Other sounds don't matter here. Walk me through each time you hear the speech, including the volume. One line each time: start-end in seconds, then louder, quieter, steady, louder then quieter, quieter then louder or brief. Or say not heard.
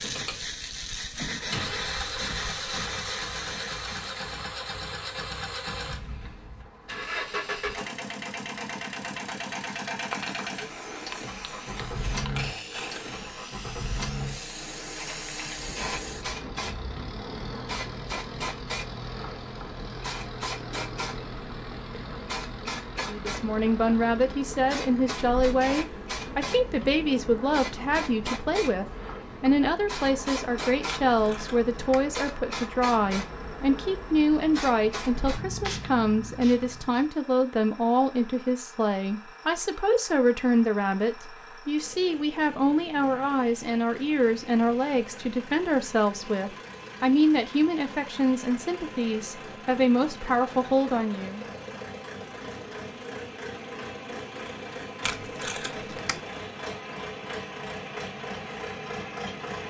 23.1-51.5 steady.